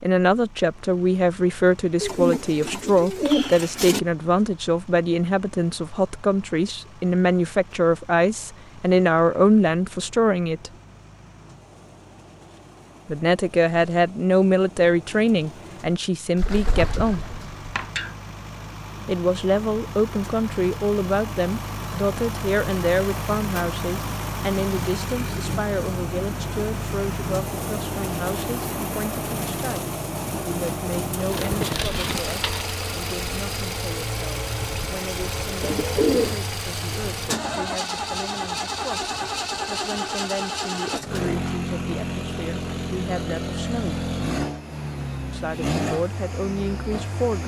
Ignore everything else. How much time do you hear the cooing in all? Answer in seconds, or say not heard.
6 s.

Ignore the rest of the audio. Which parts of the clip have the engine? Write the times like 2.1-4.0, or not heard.
0.0-47.4.